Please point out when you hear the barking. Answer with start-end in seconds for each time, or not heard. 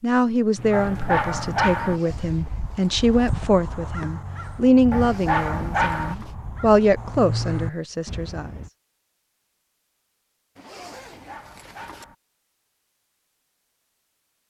0.7-2.0, 4.9-6.2, 10.9-12.2.